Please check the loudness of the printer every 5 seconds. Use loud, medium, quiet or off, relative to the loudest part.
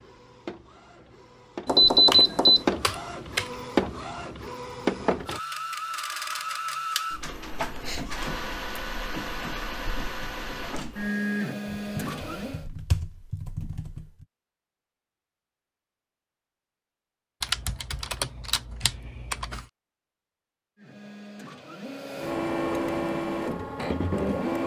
loud, loud, loud, off, loud.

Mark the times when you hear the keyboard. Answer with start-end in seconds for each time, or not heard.
1.9-3.5, 11.7-14.2, 17.4-19.6.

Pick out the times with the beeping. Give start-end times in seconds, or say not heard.
1.6-2.6.